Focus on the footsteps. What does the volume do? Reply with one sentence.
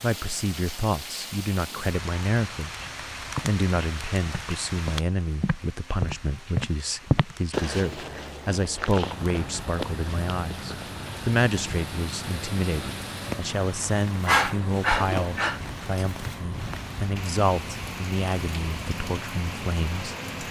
The loudness of the footsteps goes up, then down.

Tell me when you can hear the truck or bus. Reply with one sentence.
You can hear the truck or bus from 9.0 to 20.4 s.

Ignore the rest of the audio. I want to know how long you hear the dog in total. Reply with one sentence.
The dog can be heard for 2 seconds in total.